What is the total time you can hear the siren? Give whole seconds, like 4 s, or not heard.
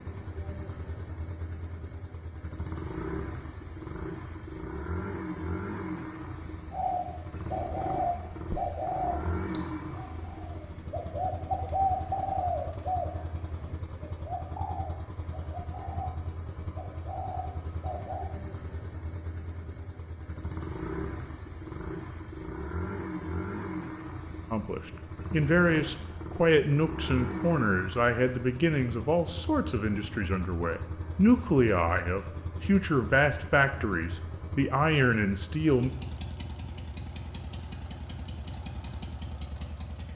not heard.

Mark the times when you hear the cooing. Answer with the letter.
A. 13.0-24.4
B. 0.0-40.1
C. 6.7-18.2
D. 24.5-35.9
C.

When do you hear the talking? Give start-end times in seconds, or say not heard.
24.5-35.9.